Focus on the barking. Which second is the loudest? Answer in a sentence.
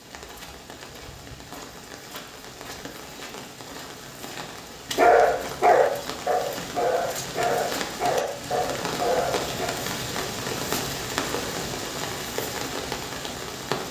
The loudest moment of the barking is at 5 seconds.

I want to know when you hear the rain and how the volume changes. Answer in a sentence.
You can hear the rain from 0.0 to 13.8 s, getting louder.